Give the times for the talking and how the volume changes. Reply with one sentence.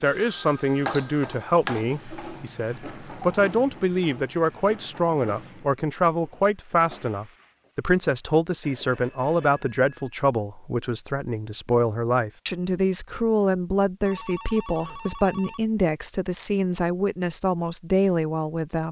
You can hear the talking from 0.0 to 18.8 s, at a steady volume.